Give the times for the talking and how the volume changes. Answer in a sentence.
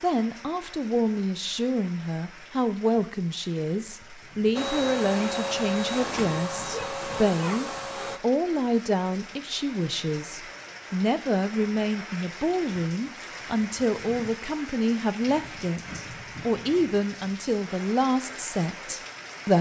The talking can be heard from 0.0 to 19.5 s, at a steady volume.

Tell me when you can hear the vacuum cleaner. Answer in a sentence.
You can hear the vacuum cleaner from 4.5 to 8.2 s.